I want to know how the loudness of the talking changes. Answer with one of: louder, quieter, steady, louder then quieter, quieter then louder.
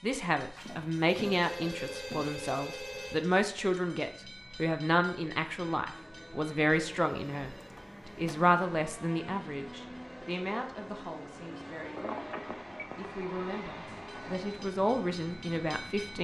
quieter then louder.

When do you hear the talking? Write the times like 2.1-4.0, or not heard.
0.0-7.5, 8.2-12.3, 12.9-16.1.